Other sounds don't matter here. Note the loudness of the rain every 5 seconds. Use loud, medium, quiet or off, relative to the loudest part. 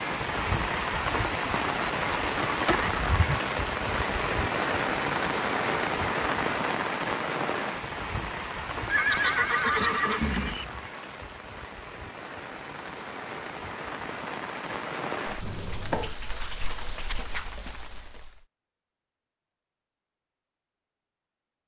loud, loud, medium, medium, off.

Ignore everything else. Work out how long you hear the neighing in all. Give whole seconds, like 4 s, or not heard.
3 s.